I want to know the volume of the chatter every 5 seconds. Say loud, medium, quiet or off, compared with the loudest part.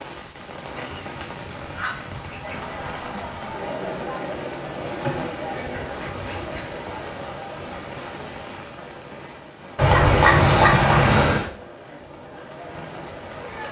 loud, loud, medium.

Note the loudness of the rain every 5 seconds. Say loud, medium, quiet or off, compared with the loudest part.
loud, loud, medium.